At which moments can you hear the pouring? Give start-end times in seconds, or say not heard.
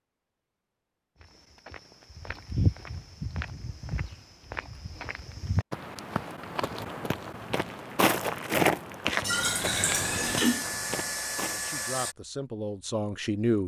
9.2-10.7.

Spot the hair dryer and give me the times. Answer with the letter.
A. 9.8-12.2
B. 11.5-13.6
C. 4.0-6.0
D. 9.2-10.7
A.